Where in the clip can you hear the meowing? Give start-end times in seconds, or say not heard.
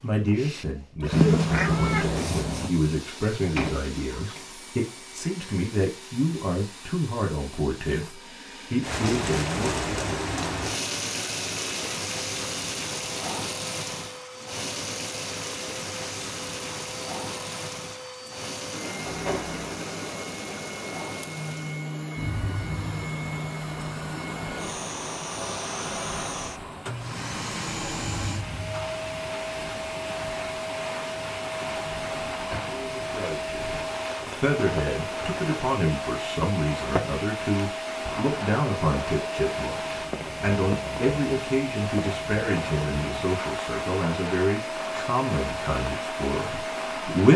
1.1-2.7.